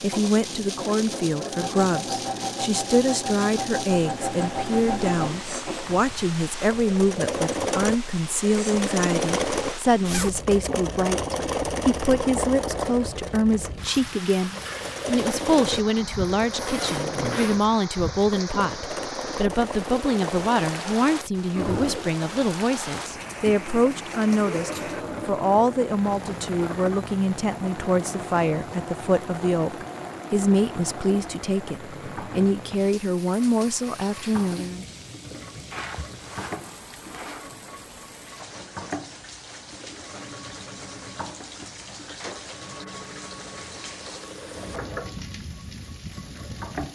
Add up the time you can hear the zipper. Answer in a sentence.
The zipper can be heard for 4 seconds in total.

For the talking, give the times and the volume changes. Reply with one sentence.
The talking can be heard from 0.0 to 34.9 s, at a steady volume.